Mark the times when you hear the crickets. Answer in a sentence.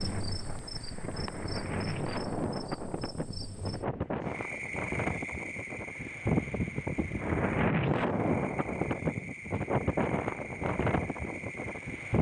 You can hear the crickets from 0.0 to 12.1 s.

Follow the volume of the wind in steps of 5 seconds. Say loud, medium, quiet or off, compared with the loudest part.
medium, loud, loud.